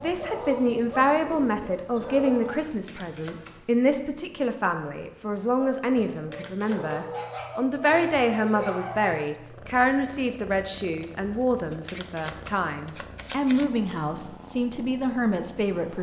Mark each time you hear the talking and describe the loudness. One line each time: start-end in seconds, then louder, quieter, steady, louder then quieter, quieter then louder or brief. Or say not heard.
0.0-15.9 steady.